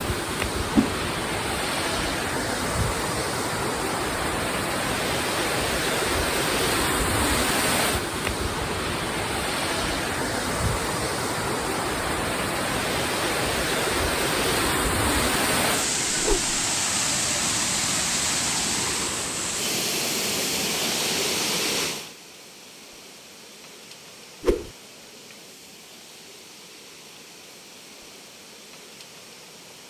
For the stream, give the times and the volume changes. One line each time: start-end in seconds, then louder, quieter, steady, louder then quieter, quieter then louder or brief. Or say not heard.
0.0-29.8 quieter.